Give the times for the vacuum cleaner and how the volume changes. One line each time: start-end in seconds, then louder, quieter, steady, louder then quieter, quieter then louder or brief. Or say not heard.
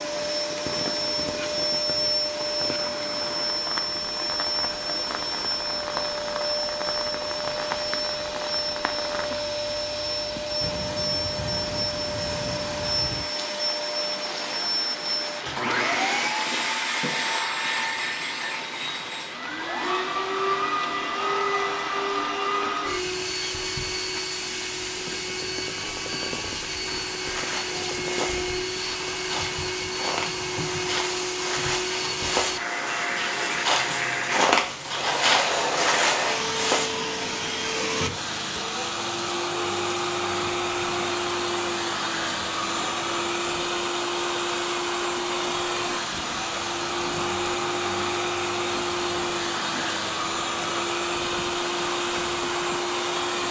0.0-53.4 steady.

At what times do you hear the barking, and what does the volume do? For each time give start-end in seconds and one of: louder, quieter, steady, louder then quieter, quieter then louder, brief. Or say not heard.
not heard.